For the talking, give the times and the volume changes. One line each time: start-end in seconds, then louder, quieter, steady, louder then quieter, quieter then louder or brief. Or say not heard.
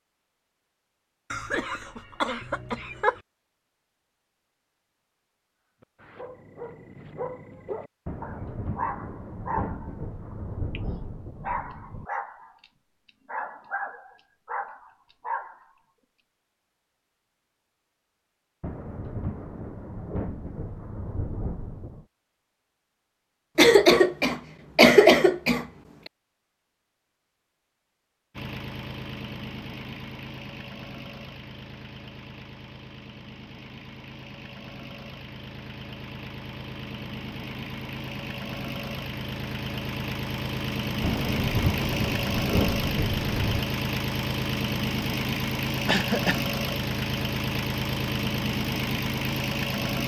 not heard.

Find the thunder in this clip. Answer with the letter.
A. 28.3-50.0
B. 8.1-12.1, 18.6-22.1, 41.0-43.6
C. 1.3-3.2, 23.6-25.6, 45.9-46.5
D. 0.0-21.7
B.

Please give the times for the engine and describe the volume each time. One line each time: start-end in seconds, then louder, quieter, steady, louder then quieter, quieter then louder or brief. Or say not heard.
28.3-50.0 louder.